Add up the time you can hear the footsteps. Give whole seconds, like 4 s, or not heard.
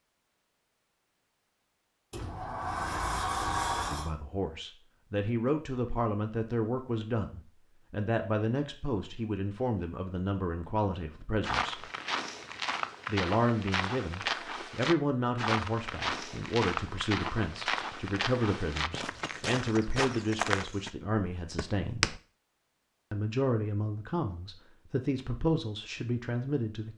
11 s.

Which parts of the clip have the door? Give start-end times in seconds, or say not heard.
2.1-4.1.